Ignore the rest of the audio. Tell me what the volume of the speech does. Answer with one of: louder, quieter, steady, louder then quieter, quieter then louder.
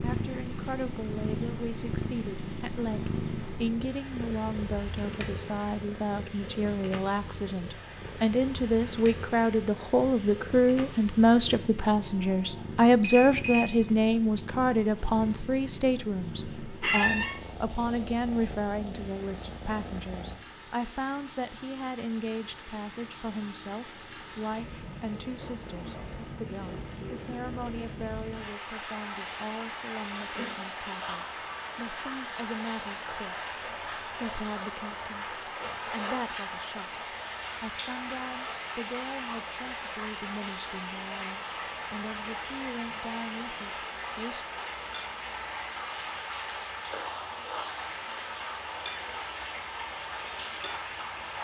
louder then quieter.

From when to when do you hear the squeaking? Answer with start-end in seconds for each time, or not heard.
16.8-17.4.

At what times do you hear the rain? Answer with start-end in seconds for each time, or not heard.
0.0-51.3.